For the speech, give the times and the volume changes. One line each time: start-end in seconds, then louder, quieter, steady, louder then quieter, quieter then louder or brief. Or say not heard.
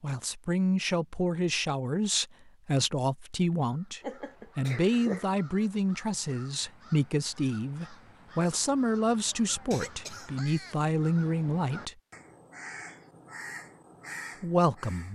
0.0-11.9 steady
14.4-15.0 brief.